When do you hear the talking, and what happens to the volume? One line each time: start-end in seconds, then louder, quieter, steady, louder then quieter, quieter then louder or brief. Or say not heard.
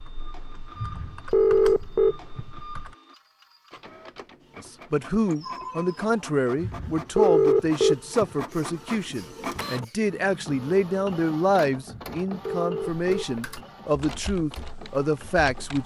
4.5-15.8 steady.